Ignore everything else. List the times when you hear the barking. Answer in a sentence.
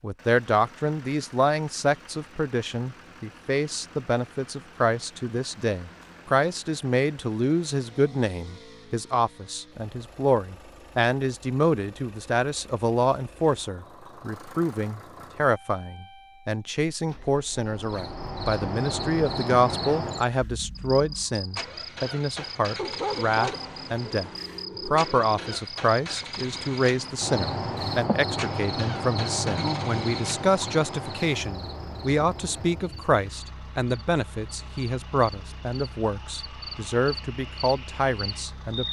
The barking can be heard from 22.8 to 25.6 s.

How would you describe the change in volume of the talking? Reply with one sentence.
The loudness of the talking stays about the same.